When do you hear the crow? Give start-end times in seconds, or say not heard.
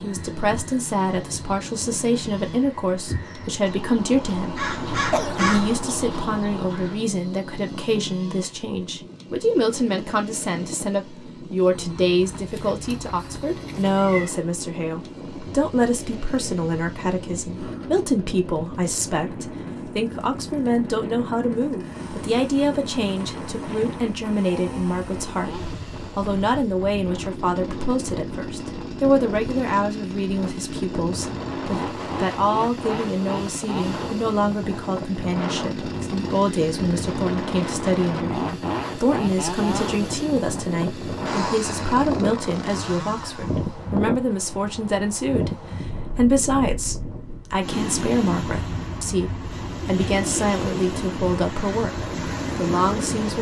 0.0-7.0.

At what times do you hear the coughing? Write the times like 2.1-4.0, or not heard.
4.8-5.5.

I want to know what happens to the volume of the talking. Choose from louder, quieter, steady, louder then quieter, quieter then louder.
steady.